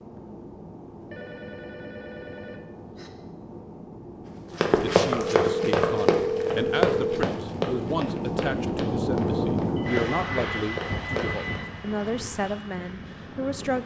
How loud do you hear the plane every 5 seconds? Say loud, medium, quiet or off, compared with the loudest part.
quiet, loud, medium.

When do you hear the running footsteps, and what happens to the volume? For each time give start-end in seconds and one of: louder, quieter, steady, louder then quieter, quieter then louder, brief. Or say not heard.
4.5-11.6 quieter then louder.